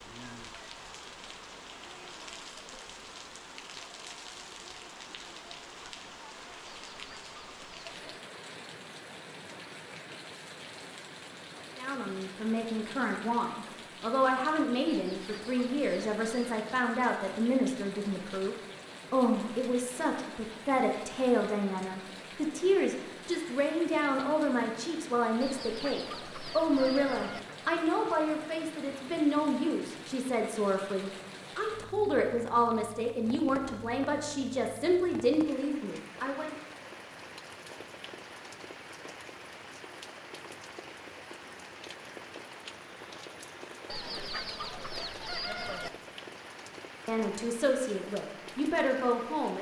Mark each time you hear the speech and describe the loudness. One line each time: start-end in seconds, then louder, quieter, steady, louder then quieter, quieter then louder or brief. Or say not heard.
11.8-36.5 steady
47.0-49.5 brief.